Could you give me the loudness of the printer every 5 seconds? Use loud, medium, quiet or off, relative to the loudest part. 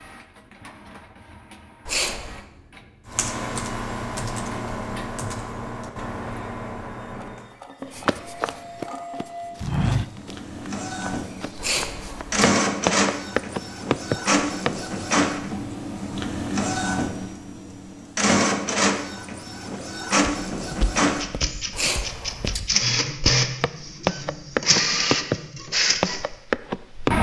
quiet, quiet, loud, loud, loud, loud.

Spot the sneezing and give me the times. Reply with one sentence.
The sneezing can be heard from 1.9 to 2.5 s, from 11.6 to 12.5 s and from 21.7 to 22.6 s.